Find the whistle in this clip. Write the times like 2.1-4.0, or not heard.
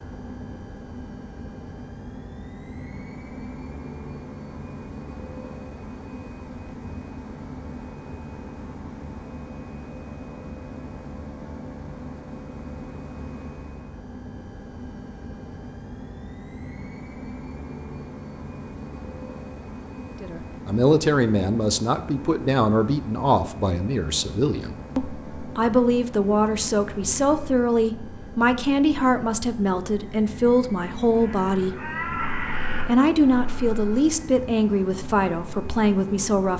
not heard.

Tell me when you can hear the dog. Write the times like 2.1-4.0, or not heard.
not heard.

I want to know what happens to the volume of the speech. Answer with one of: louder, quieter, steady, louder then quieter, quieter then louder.
steady.